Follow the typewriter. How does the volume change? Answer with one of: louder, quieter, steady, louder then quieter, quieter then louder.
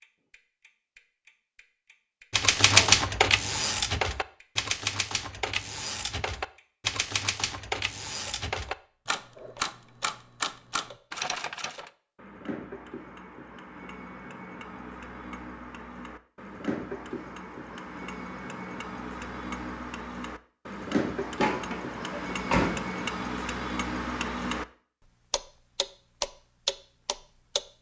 quieter.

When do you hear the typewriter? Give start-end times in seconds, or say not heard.
2.3-11.9.